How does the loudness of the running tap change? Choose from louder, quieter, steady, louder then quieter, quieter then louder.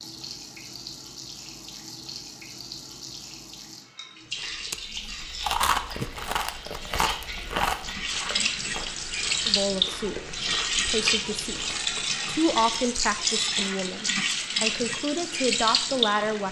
louder.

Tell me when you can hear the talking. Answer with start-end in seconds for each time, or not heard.
9.4-16.4.